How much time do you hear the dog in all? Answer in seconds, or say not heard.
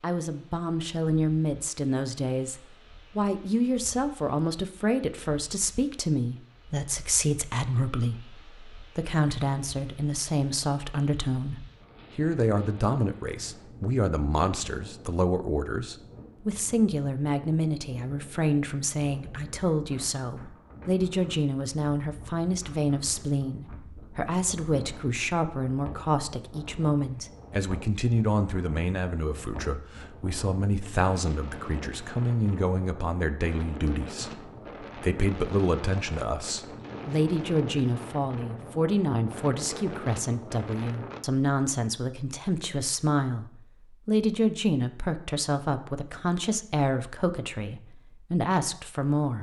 not heard.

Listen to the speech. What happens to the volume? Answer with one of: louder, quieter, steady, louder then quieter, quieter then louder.
steady.